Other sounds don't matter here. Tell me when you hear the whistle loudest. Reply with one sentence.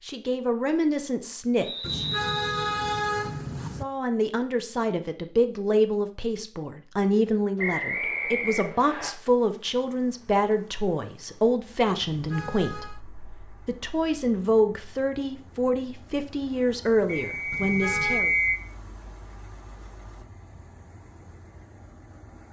The volume of the whistle peaks at 18 seconds.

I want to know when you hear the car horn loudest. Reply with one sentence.
The volume of the car horn peaks at 3 seconds.